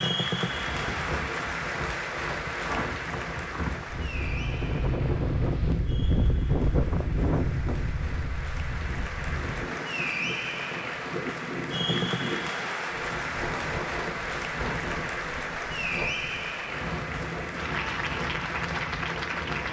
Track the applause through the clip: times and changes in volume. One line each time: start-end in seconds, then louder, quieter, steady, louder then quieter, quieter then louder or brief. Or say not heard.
0.0-19.6 quieter then louder.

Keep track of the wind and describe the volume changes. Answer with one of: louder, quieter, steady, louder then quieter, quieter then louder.
louder then quieter.